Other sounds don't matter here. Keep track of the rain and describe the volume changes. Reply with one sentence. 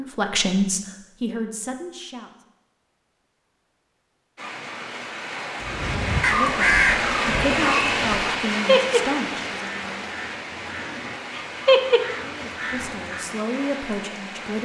The volume of the rain goes up, then down.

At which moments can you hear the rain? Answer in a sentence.
You can hear the rain from 4.3 to 14.6 s.